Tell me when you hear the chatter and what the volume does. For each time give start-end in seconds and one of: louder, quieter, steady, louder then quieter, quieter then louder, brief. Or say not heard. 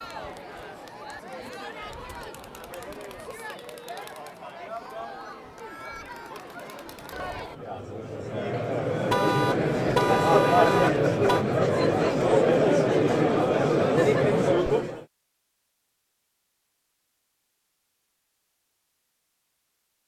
0.0-15.1 louder.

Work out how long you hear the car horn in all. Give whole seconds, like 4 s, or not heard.
2 s.